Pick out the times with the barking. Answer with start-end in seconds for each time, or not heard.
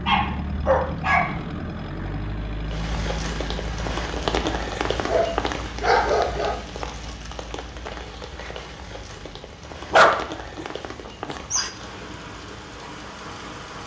0.1-1.4, 5.0-6.6, 9.9-11.7.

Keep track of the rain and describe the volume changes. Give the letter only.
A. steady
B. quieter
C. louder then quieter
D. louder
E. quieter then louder
B.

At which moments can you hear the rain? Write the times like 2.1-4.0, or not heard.
2.6-13.8.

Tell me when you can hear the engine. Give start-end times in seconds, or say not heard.
0.0-13.8.